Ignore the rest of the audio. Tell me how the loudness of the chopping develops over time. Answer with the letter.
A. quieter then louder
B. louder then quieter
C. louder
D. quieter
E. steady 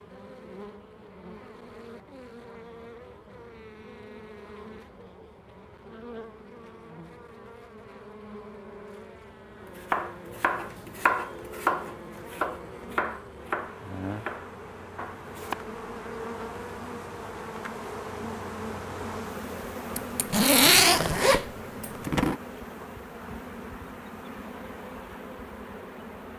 B.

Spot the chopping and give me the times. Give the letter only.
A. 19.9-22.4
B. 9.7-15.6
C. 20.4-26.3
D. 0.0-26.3
B.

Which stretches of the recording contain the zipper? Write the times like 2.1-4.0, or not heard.
19.9-22.4.